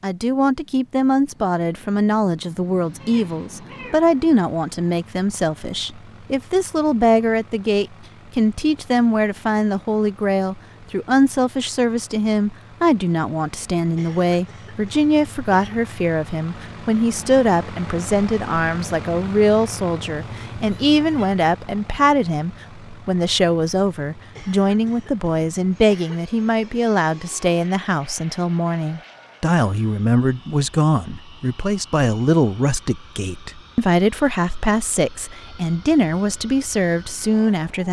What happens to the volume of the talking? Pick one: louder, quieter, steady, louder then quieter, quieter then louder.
steady.